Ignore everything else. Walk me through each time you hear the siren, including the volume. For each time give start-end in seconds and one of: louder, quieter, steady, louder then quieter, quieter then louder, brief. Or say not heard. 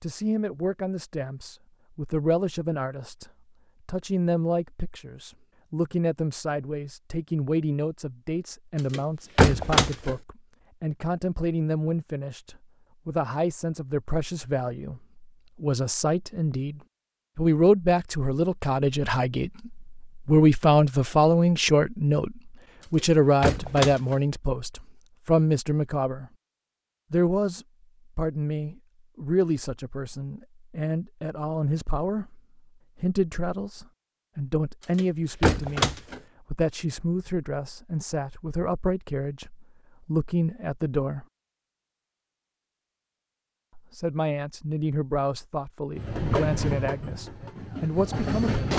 not heard.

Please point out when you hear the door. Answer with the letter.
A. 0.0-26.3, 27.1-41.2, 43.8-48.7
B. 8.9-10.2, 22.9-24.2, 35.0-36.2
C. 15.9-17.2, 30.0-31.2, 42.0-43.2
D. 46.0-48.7
B.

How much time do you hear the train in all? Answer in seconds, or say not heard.
3 s.